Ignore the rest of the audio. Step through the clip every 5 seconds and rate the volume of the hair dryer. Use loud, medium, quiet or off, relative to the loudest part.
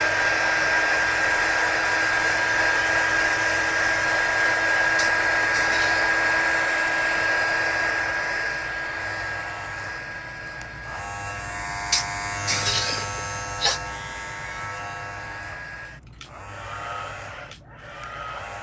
loud, loud, quiet, quiet.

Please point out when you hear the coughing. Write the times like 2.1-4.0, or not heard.
5.0-6.0, 11.9-13.8.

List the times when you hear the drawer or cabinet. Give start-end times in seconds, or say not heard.
not heard.